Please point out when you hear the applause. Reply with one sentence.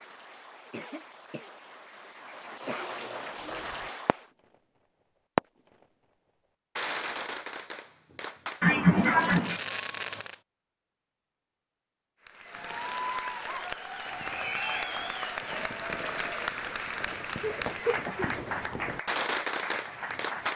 The applause can be heard from 0.0 to 4.3 s and from 12.2 to 20.5 s.